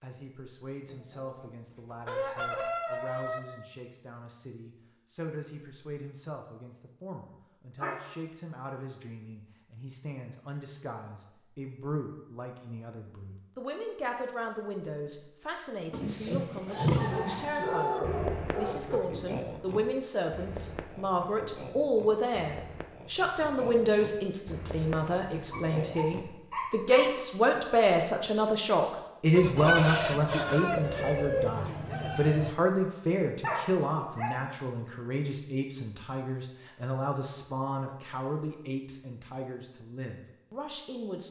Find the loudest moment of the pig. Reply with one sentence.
The loudest moment of the pig is at 17 seconds.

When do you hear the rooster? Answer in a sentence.
The rooster can be heard from 0.8 to 3.4 s, from 16.1 to 18.0 s and from 29.3 to 32.5 s.